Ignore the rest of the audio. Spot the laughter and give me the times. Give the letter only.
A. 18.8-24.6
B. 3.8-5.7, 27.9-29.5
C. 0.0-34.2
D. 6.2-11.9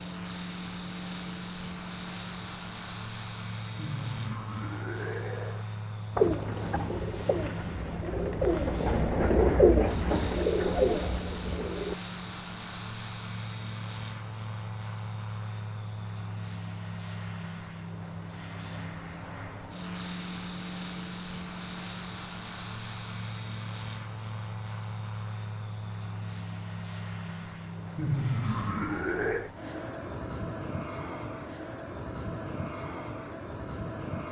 B.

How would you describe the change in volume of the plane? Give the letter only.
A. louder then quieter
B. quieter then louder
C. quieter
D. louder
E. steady
E.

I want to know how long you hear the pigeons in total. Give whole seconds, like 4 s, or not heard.
6 s.